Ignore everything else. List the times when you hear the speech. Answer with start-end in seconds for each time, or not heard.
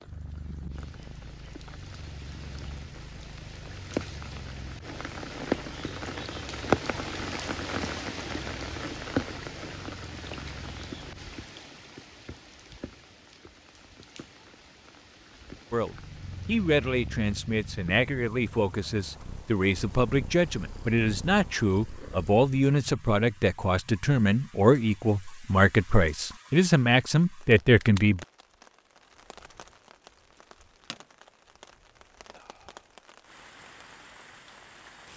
15.7-28.2.